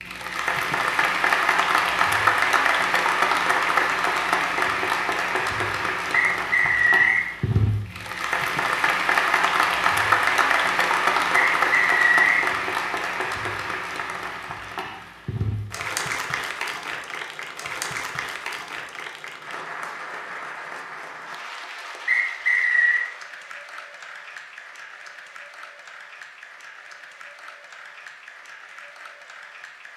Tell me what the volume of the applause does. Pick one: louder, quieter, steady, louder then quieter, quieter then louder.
quieter.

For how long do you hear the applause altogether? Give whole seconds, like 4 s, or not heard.
30 s.